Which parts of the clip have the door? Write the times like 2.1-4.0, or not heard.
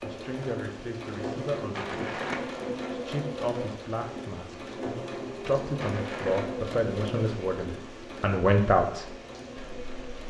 not heard.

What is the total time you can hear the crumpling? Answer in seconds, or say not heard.
2 s.